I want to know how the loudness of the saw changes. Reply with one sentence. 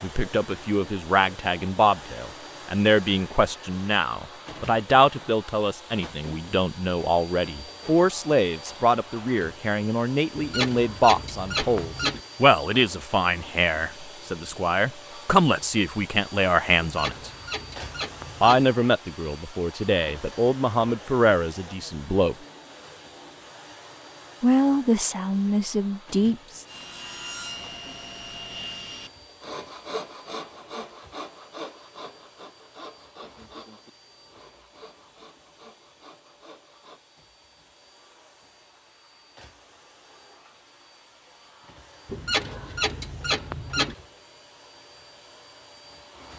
The volume of the saw goes down.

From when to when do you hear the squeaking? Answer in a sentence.
The squeaking can be heard from 10.3 to 12.2 s, from 16.8 to 18.6 s and from 42.0 to 44.0 s.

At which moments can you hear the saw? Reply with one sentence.
You can hear the saw from 26.6 to 37.0 s.